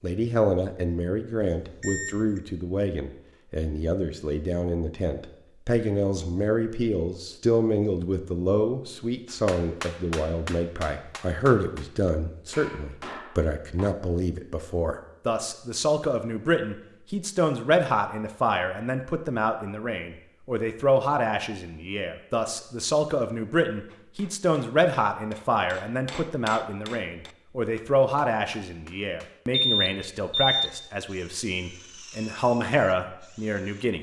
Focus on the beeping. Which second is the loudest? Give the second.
30 s.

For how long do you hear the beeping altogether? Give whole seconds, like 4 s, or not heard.
2 s.